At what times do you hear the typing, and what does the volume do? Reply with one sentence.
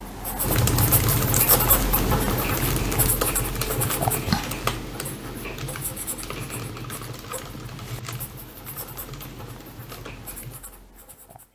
You can hear the typing from 0.4 to 10.6 s, getting quieter.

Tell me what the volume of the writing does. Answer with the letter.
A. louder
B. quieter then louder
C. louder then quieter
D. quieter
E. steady
D.